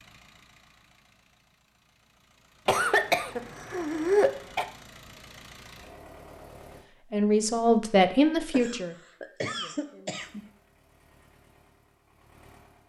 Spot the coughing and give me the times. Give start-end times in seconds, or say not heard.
2.6-4.7, 8.5-10.4.